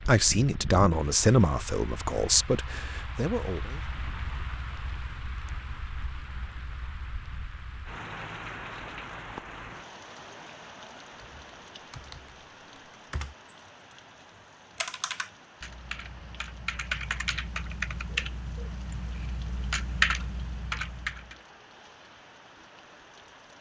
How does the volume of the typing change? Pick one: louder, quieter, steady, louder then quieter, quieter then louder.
louder.